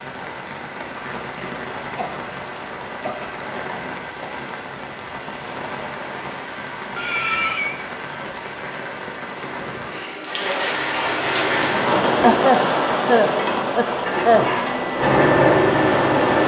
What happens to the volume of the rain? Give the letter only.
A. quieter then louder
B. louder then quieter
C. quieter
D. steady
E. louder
E.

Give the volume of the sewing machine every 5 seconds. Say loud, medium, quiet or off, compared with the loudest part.
off, off, medium, loud.